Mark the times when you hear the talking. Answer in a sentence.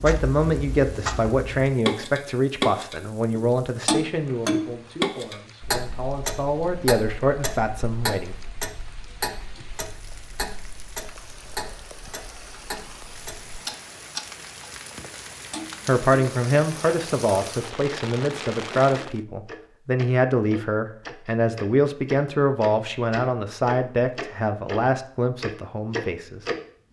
You can hear the talking from 0.0 to 8.3 s and from 15.8 to 26.4 s.